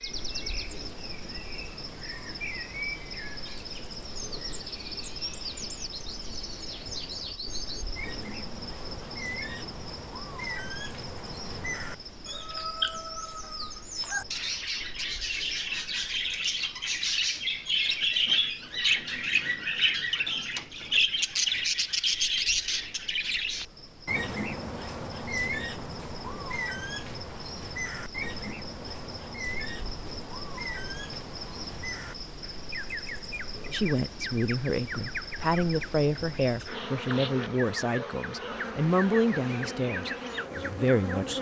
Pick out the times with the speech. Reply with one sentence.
The speech can be heard from 33.7 to 41.3 s.